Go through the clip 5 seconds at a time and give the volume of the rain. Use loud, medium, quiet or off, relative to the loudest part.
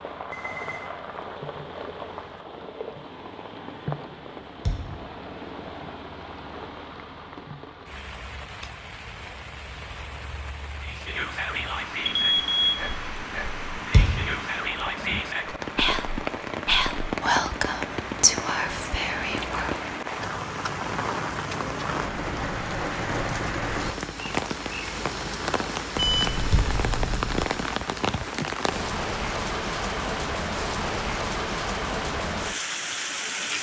medium, medium, medium, loud, loud, loud, loud.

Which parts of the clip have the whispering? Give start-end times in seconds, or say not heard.
10.8-19.9.